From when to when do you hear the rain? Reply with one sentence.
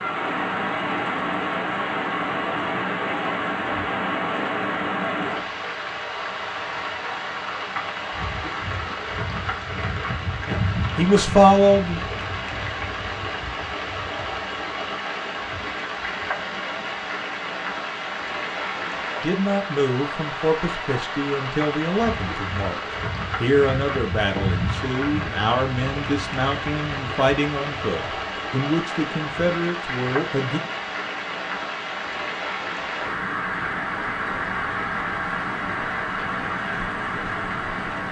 You can hear the rain from 0.0 to 38.0 s.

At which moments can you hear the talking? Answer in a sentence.
You can hear the talking from 10.4 to 12.0 s, from 19.2 to 22.8 s and from 23.4 to 30.6 s.